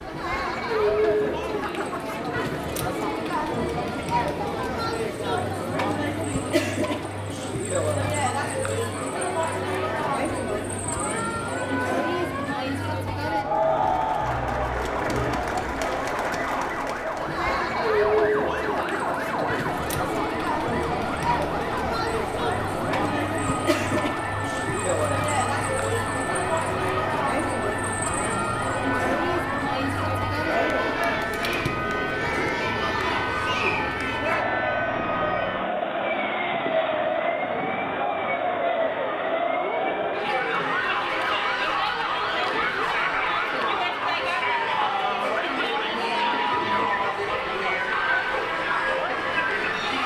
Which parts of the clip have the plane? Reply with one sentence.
You can't hear the plane here.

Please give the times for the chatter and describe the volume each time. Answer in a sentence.
The chatter can be heard from 0.0 to 50.0 s, at a steady volume.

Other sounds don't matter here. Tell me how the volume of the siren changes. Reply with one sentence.
The loudness of the siren stays about the same.